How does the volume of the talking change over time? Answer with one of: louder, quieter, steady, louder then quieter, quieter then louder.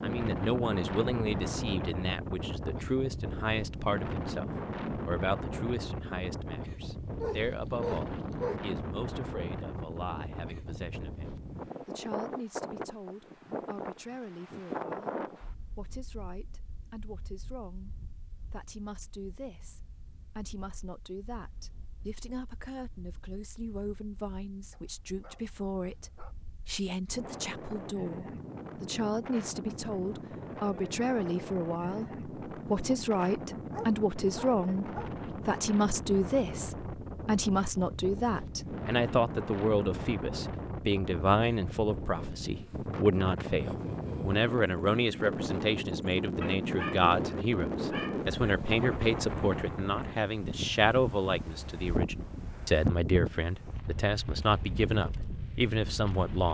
quieter then louder.